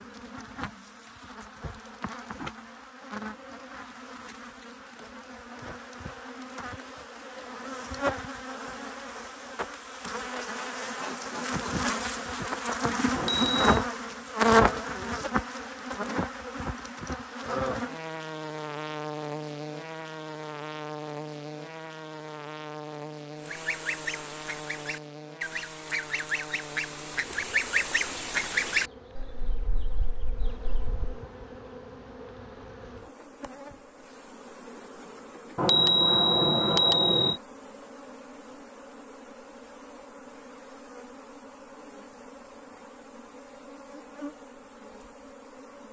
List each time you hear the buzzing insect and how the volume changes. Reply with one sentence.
The buzzing insect can be heard from 0.0 to 45.8 s, getting louder then quieter.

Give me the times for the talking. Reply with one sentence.
The talking can't be heard in this clip.